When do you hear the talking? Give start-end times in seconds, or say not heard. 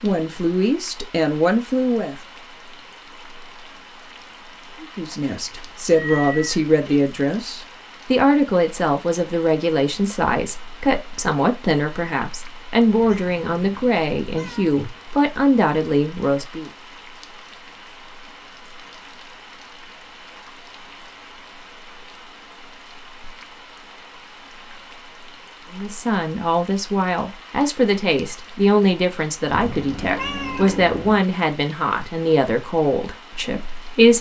0.0-2.1, 4.8-16.7, 25.7-34.1.